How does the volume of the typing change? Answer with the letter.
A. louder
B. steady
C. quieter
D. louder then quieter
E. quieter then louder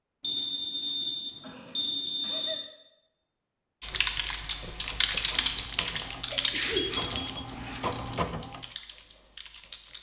C.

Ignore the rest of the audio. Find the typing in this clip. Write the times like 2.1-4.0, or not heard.
3.8-9.9.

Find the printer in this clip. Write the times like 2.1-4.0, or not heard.
4.7-8.7.